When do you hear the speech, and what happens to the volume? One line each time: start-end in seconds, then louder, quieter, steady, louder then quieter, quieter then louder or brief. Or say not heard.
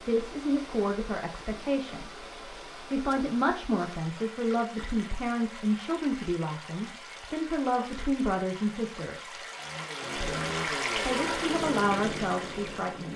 0.1-9.4 steady
10.2-13.1 brief.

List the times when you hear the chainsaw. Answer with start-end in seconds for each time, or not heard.
9.6-13.1.